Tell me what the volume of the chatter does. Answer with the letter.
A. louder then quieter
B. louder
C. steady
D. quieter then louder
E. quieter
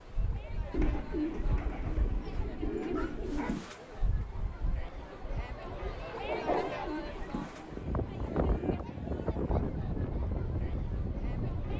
A.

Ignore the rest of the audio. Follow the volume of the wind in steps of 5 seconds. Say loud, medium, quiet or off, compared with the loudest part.
medium, loud, loud.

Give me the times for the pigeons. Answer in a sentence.
The pigeons can be heard from 0.7 to 3.5 s and from 6.5 to 8.8 s.